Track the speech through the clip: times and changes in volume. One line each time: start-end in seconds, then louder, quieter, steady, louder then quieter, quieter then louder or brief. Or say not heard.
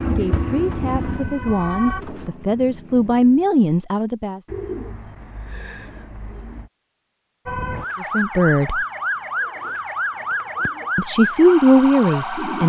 0.0-4.4 louder
8.0-8.8 brief
10.9-12.6 brief.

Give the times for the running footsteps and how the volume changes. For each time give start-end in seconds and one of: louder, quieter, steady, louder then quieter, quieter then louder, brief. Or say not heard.
not heard.